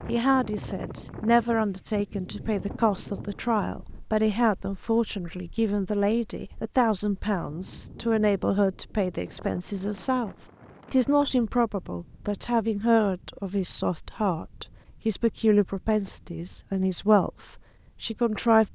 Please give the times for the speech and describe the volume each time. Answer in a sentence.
You can hear the speech from 0.1 to 18.7 s, at a steady volume.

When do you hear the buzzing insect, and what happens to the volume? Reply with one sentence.
You can't hear the buzzing insect here.